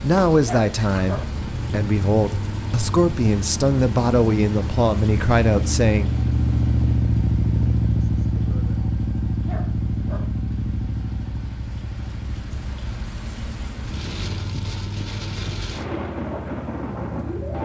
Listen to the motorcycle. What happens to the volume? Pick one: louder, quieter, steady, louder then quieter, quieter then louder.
louder then quieter.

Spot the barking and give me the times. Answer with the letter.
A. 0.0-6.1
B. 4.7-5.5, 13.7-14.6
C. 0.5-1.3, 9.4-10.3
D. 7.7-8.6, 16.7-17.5
C.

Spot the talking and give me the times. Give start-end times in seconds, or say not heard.
0.0-6.1.